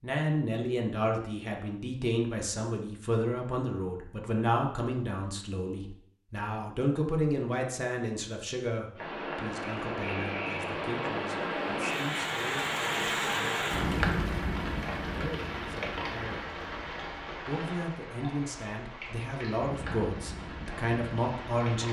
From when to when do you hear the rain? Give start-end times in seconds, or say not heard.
8.9-21.8.